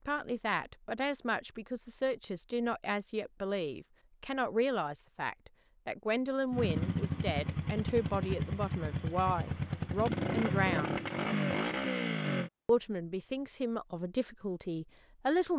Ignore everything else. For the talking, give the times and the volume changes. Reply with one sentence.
You can hear the talking from 0.1 to 11.0 s, at a steady volume; and briefly from 12.7 to 15.5 s.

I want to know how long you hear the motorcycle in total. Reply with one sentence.
You can hear the motorcycle for 6 seconds altogether.